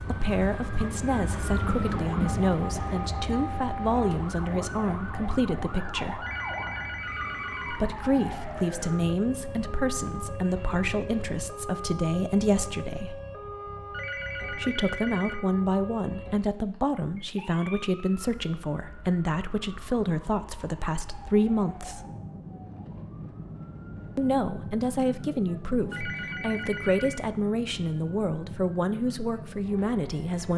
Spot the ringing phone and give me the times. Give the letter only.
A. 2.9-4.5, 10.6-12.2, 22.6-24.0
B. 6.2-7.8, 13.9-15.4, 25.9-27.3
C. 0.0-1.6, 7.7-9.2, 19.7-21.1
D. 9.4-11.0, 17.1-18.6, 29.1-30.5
B.